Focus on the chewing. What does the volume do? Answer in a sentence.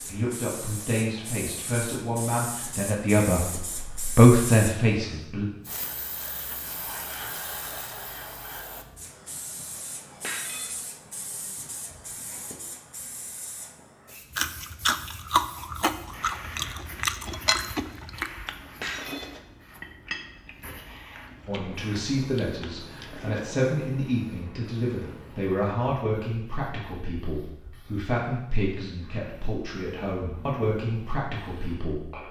The loudness of the chewing goes down.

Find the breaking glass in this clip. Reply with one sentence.
The breaking glass can be heard from 10.2 to 10.8 s and from 18.8 to 19.4 s.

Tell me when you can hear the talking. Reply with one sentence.
You can hear the talking from 0.0 to 5.5 s and from 21.4 to 32.2 s.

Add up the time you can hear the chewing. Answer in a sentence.
You can hear the chewing for 9 seconds altogether.